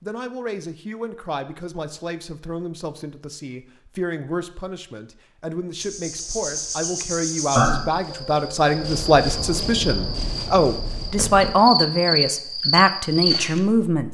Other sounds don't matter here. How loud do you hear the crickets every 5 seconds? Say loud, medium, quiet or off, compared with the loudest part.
off, loud, loud.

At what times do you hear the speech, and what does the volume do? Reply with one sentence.
The speech can be heard from 0.0 to 14.0 s, getting louder.